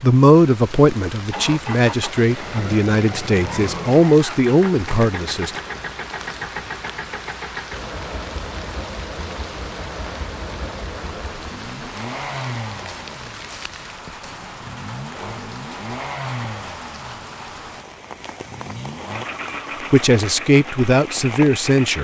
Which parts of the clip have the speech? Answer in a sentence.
You can hear the speech from 0.0 to 5.5 s and from 19.9 to 22.0 s.